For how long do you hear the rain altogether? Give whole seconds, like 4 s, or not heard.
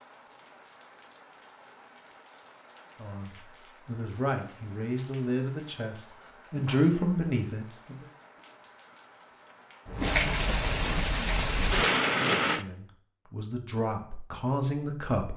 13 s.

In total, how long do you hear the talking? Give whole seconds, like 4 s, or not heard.
8 s.